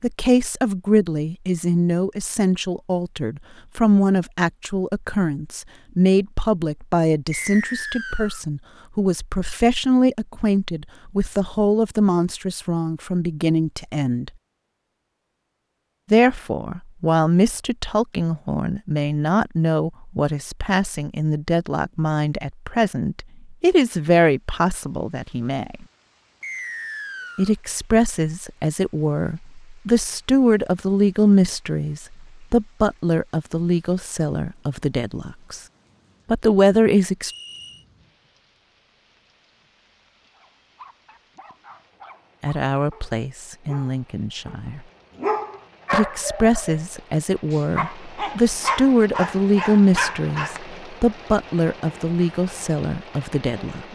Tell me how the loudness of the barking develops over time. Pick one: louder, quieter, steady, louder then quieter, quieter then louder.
louder.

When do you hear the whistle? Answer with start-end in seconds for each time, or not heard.
7.3-8.4, 26.4-27.6, 37.2-37.9.